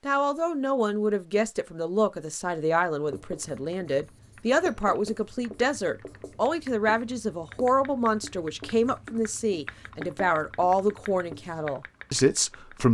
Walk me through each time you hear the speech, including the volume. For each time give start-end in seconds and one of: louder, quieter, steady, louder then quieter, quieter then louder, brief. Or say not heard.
0.1-12.8 steady.